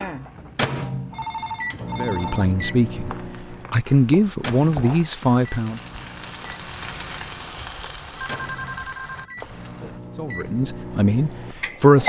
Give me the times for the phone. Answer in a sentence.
You can hear the phone from 1.1 to 2.5 s and from 8.2 to 9.3 s.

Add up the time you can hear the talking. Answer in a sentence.
The talking can be heard for 6 seconds in total.